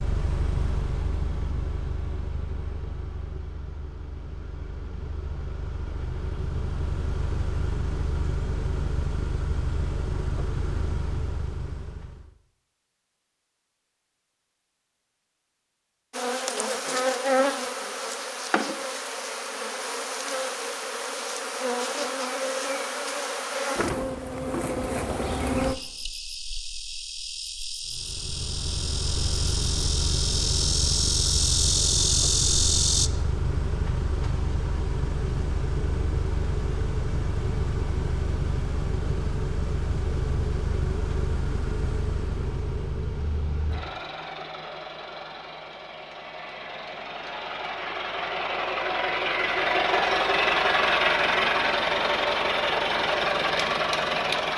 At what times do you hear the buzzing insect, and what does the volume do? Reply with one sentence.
You can hear the buzzing insect from 16.1 to 33.1 s, getting quieter then louder.